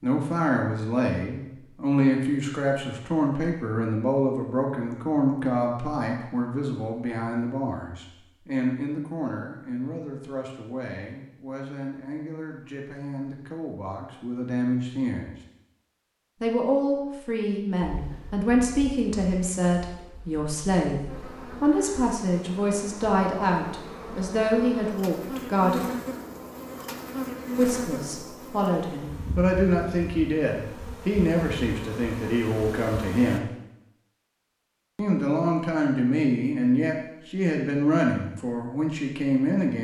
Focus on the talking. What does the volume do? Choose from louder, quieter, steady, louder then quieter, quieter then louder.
quieter then louder.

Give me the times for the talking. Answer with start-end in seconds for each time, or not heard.
0.0-15.3, 16.4-25.8, 27.6-33.5, 35.0-39.7.